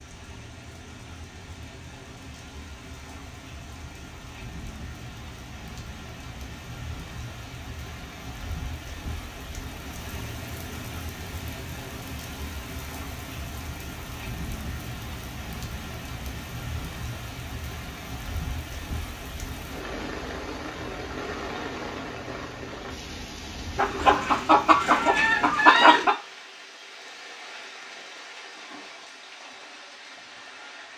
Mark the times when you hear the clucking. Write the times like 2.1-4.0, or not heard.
23.8-26.1.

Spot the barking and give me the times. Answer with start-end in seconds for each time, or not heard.
not heard.